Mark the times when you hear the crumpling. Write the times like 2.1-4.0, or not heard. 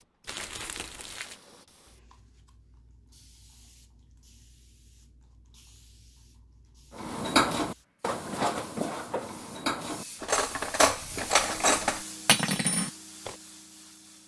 0.2-1.4.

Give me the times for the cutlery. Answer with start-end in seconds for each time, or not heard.
7.0-13.3.